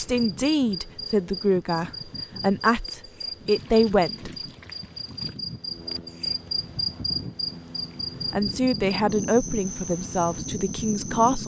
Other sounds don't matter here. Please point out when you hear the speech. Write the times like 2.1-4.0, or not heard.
0.0-4.3, 8.3-11.4.